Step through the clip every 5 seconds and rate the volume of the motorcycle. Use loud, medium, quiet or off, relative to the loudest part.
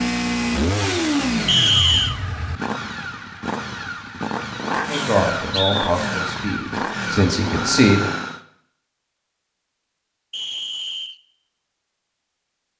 loud, loud, off.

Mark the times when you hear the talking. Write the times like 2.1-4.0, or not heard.
4.8-8.1.